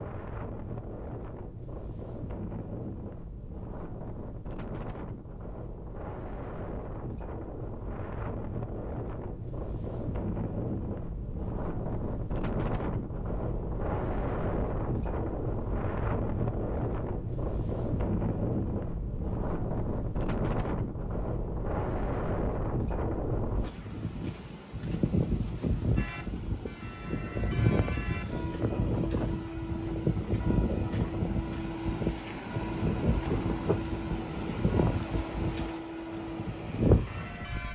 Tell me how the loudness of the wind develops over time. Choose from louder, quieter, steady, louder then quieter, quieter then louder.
louder.